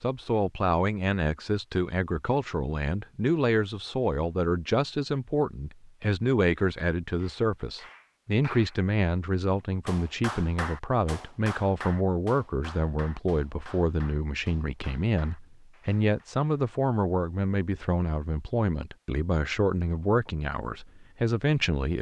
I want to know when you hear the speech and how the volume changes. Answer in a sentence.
The speech can be heard from 0.0 to 21.9 s, at a steady volume.